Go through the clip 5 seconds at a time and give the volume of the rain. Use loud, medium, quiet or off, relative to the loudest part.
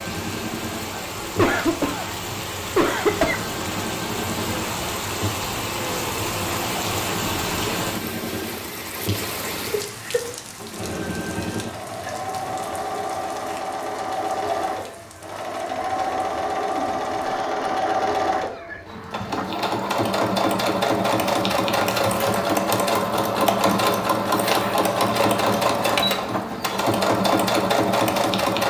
loud, loud, medium, quiet, off, off.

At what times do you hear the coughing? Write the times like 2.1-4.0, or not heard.
1.4-3.4, 16.9-18.9.